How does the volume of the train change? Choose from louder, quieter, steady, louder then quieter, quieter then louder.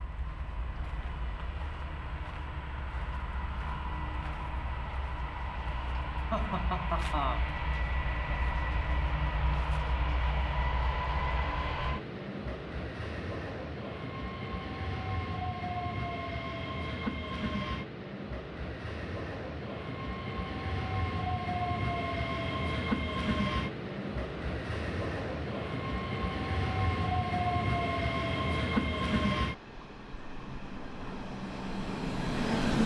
louder.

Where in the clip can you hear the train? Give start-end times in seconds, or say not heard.
0.0-32.8.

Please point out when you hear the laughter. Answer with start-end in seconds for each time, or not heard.
6.3-7.4.